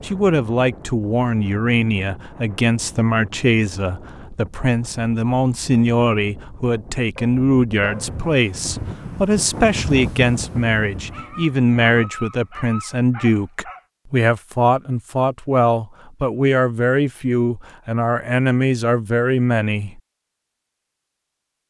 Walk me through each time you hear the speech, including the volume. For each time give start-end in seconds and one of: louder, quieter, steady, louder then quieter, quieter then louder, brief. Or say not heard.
0.0-20.0 steady.